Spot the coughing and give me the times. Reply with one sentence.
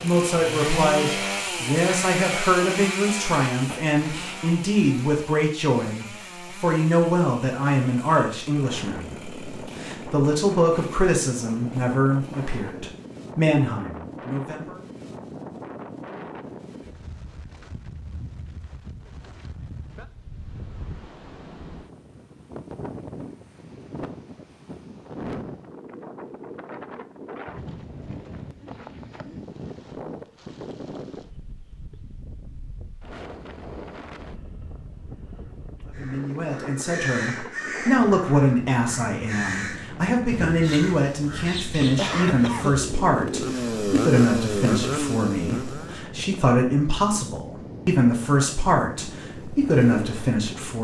You can hear the coughing from 41.8 to 42.8 s.